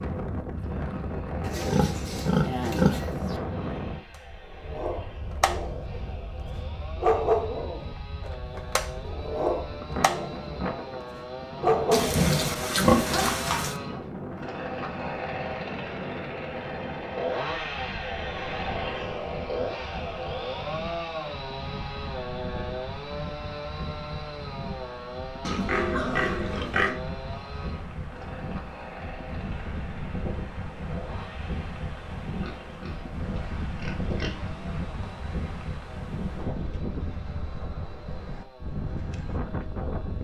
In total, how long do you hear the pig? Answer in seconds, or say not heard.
8 s.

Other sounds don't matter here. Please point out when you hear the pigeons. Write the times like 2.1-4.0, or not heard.
not heard.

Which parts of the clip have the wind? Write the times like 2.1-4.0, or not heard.
0.0-40.1.